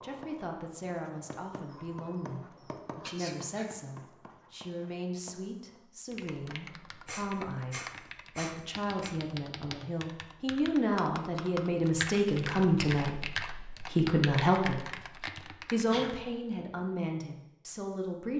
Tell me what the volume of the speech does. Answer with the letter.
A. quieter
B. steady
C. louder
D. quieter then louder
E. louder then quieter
C.